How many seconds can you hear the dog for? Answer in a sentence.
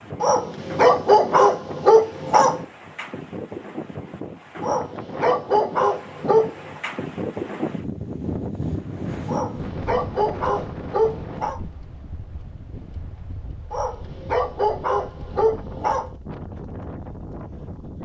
You can hear the dog for 9 seconds altogether.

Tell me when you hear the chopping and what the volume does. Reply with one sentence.
The chopping can't be heard in this clip.